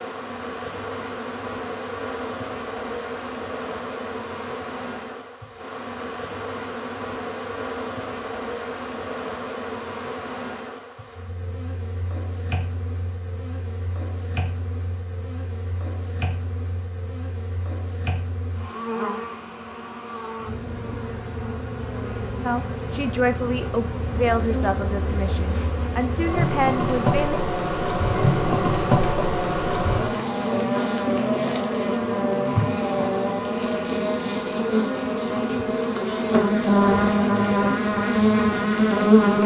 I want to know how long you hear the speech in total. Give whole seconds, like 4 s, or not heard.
5 s.